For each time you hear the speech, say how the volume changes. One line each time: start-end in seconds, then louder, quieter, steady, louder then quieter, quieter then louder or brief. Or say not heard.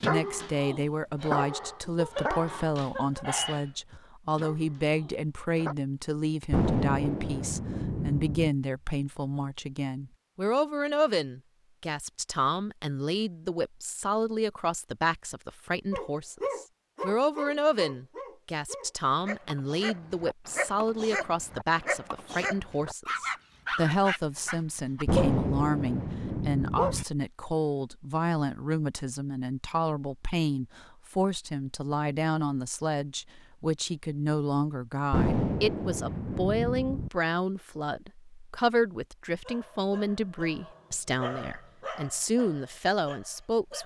0.0-43.8 steady.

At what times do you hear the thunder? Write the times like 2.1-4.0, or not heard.
6.5-8.5, 25.1-27.1, 35.1-37.1.